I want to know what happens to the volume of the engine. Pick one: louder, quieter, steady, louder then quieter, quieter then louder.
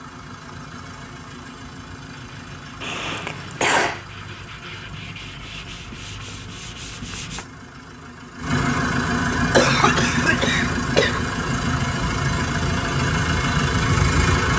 louder.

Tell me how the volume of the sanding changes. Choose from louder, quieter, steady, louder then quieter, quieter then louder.
louder.